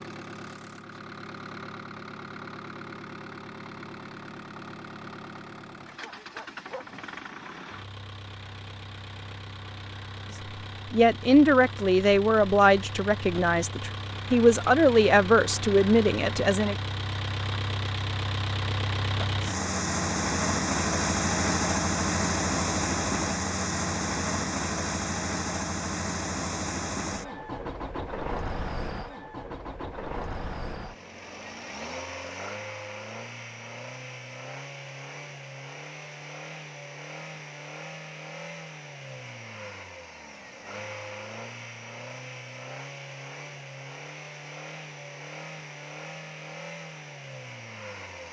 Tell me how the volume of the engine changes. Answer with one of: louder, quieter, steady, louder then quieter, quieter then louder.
louder then quieter.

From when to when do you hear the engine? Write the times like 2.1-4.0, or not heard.
0.0-48.2.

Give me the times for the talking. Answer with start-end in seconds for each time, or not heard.
10.9-16.8.